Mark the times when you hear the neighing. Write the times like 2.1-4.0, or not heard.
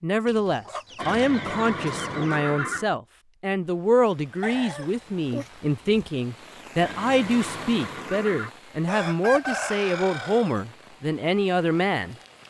1.0-2.9, 6.8-8.5.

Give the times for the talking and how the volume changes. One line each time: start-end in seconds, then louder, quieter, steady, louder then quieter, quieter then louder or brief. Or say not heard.
0.0-12.4 steady.